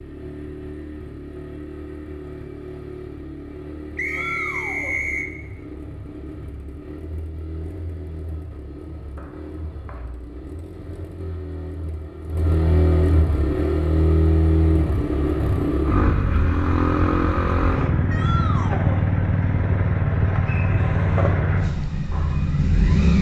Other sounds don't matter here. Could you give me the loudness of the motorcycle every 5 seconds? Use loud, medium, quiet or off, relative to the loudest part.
quiet, quiet, loud, loud, loud.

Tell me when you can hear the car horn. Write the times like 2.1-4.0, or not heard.
not heard.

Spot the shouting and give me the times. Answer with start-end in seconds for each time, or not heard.
4.0-5.0, 18.1-19.1.